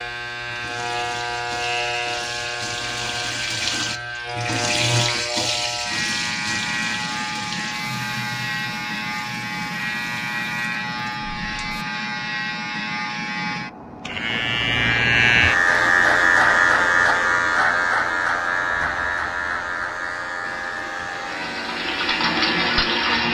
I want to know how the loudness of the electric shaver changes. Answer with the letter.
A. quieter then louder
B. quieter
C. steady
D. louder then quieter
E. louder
D.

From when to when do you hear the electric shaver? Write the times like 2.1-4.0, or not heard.
0.0-23.3.